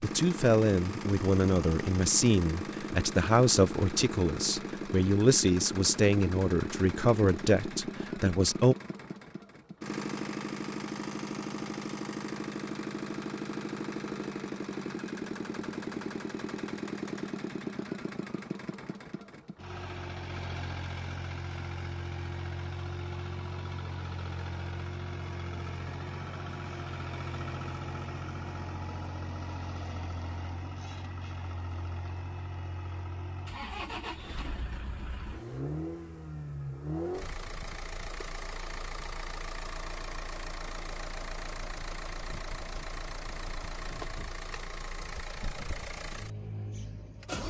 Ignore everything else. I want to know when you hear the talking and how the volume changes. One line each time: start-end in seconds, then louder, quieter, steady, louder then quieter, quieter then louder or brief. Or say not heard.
0.0-8.8 steady.